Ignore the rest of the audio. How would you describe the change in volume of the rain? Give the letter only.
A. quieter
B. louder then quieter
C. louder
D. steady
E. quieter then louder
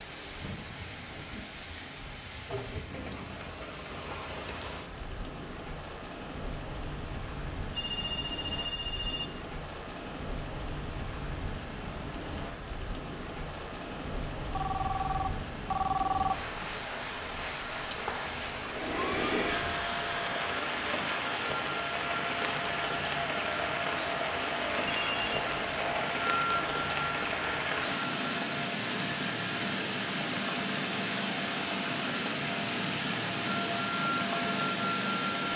C.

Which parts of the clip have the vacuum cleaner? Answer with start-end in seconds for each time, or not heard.
18.6-35.5.